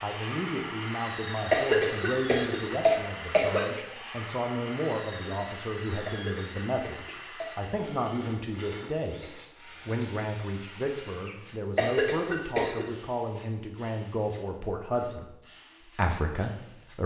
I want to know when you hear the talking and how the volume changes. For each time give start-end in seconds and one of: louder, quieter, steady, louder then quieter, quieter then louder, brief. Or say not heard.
0.0-17.0 steady.